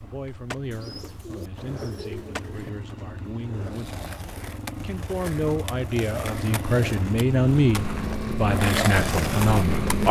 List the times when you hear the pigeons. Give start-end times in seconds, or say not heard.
0.7-2.7.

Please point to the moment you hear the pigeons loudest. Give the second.
2 s.